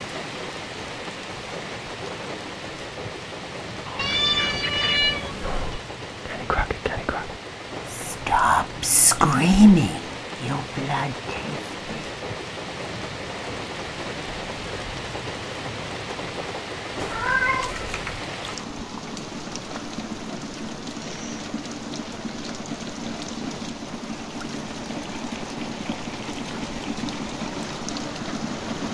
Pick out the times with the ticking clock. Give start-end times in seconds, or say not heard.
not heard.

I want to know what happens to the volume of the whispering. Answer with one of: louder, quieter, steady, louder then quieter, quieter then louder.
louder then quieter.